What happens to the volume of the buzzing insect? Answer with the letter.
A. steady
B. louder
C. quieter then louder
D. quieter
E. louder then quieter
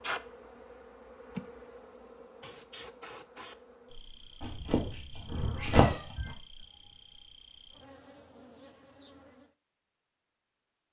D.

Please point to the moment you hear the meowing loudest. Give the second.
6 s.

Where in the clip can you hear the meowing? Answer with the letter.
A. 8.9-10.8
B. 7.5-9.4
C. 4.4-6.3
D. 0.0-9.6
C.